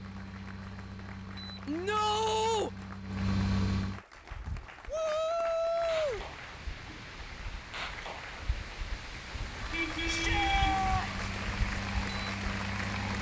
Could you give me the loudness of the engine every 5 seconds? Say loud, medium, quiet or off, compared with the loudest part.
loud, off, loud.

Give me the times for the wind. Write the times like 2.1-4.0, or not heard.
4.1-13.1.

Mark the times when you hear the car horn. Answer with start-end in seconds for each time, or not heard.
9.3-10.9.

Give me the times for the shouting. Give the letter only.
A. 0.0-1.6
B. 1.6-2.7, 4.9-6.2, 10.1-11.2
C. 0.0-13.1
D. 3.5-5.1
B.